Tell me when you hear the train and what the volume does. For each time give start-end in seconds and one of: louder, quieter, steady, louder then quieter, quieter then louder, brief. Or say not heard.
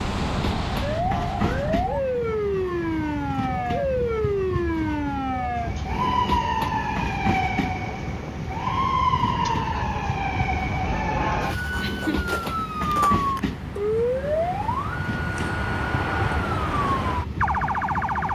0.0-18.3 steady.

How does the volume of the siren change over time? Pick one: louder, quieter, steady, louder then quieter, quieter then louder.
steady.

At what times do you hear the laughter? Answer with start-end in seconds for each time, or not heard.
11.8-12.9.